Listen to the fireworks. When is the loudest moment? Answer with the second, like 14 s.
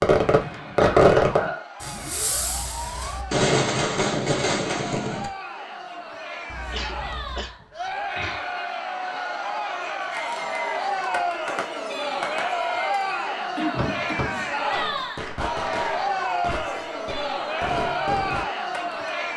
1 s.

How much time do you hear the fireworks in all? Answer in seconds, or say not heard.
14 s.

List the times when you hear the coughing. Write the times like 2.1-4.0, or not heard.
0.8-1.6, 6.7-8.4, 13.6-14.3.